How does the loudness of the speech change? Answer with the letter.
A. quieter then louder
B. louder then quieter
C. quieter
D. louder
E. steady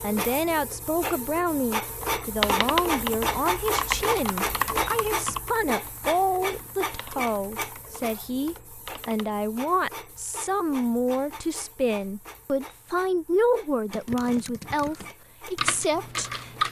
E.